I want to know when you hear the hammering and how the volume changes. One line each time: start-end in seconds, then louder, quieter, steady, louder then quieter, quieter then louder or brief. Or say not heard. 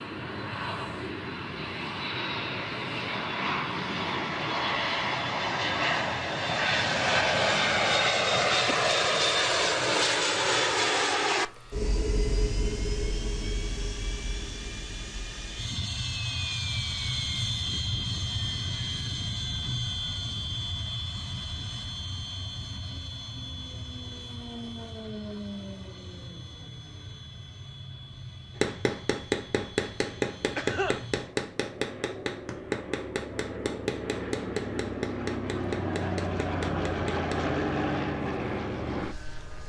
28.6-37.5 quieter.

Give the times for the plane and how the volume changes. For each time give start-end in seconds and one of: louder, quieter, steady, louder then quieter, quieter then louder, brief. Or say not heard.
0.0-39.6 quieter then louder.